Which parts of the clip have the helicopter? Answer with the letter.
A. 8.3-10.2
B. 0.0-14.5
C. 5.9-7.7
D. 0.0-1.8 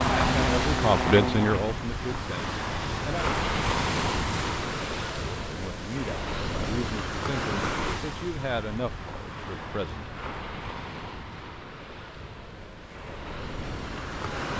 D.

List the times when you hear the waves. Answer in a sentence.
You can hear the waves from 0.0 to 14.5 s.